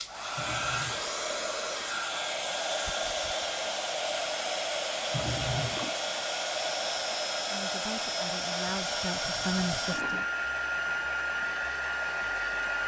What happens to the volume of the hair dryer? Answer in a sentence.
The loudness of the hair dryer stays about the same.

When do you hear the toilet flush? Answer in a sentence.
You can hear the toilet flush from 0.3 to 1.1 s, from 5.1 to 6.0 s and from 9.2 to 10.2 s.